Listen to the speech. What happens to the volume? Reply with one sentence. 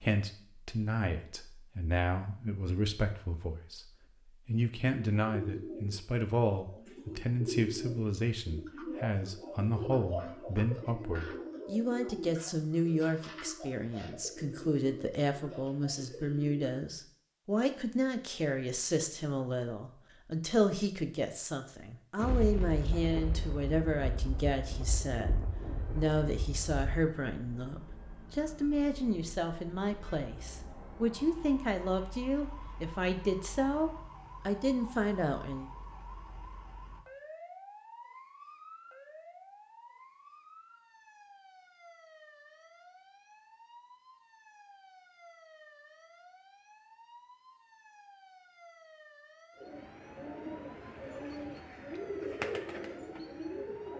The loudness of the speech stays about the same.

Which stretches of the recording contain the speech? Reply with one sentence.
You can hear the speech from 0.0 to 35.7 s.